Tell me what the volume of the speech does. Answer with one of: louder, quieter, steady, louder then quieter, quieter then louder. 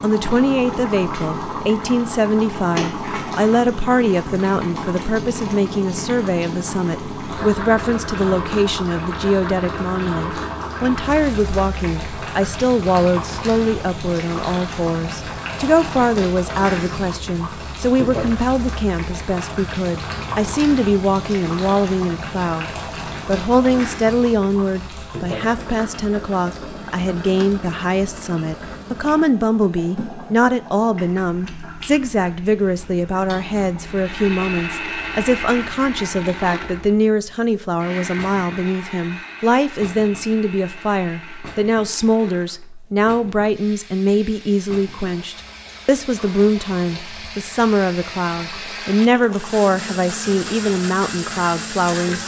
steady.